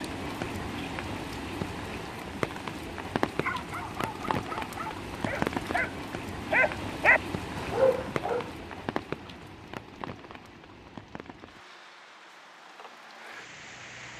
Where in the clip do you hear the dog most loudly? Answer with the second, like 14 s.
7 s.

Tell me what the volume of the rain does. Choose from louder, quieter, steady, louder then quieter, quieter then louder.
quieter.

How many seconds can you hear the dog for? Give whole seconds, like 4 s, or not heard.
5 s.